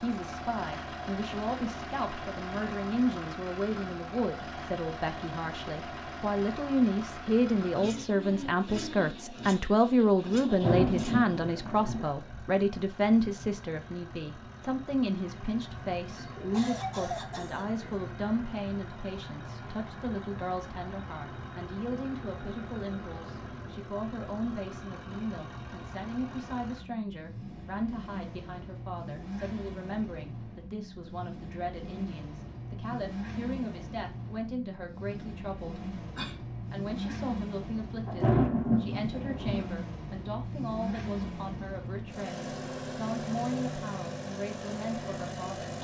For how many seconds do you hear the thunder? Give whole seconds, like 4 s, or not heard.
3 s.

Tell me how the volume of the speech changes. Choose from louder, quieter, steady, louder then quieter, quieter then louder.
quieter.